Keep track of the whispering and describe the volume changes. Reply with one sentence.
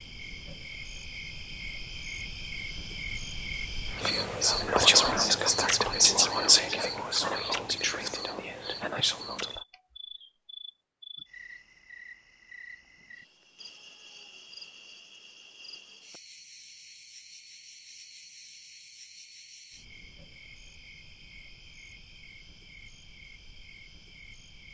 The volume of the whispering goes down.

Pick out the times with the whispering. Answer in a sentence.
The whispering can be heard from 4.0 to 9.6 s.